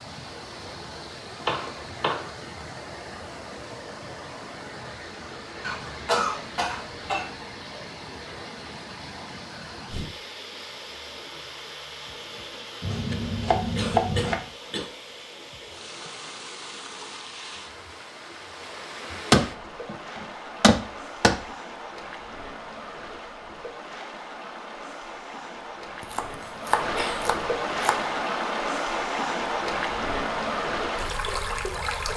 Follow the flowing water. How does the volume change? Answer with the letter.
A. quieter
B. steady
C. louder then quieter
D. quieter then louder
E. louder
E.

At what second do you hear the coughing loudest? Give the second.
6 s.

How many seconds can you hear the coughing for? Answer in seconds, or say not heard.
4 s.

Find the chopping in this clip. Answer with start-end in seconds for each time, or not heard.
1.4-2.3, 12.8-14.4, 19.3-21.4, 26.0-28.0.